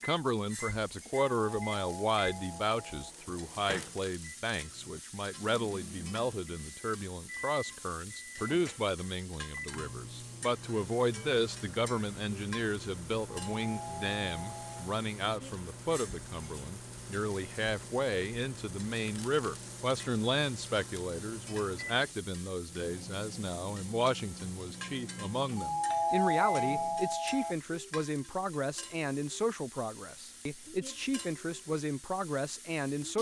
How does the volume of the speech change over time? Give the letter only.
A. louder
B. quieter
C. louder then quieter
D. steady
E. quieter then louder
D.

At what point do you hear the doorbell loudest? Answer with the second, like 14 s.
26 s.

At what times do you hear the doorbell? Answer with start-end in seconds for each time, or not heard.
1.4-3.1, 13.4-14.9, 25.6-27.6.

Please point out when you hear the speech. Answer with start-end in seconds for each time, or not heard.
0.0-33.1.